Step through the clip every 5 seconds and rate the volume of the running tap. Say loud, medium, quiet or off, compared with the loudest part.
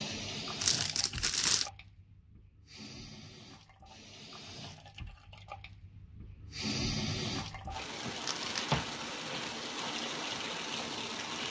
medium, loud, loud.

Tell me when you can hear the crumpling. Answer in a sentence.
The crumpling can be heard from 0.6 to 1.7 s and from 8.2 to 8.8 s.